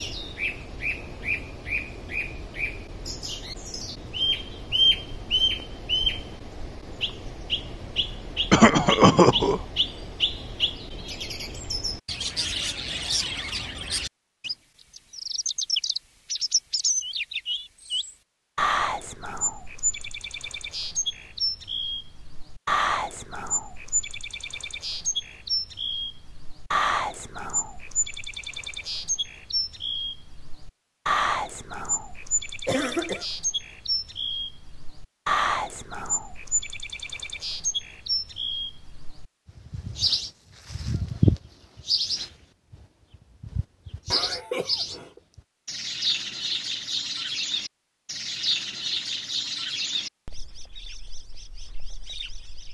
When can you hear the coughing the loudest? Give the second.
9 s.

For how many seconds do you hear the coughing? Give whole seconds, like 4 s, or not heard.
3 s.